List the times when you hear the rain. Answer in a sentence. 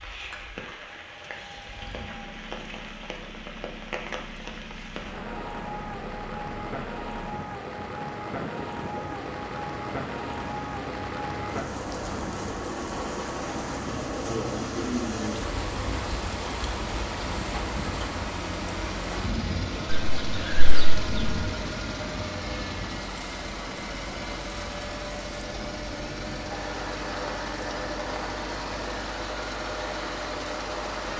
The rain can be heard from 0.0 to 31.1 s.